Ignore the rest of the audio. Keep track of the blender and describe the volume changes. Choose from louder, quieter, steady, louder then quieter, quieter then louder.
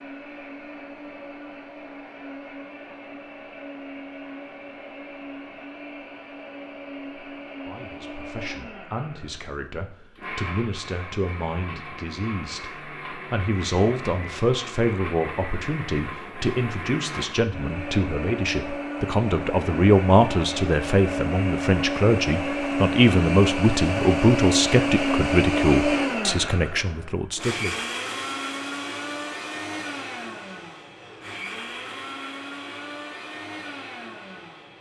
louder then quieter.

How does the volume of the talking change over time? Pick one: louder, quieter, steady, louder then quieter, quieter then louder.
louder.